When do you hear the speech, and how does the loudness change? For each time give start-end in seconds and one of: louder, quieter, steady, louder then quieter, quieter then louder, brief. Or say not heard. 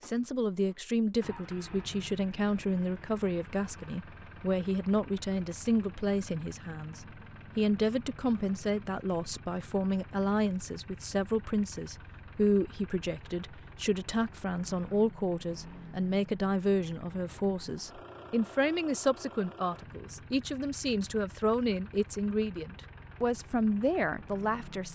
0.1-24.9 steady.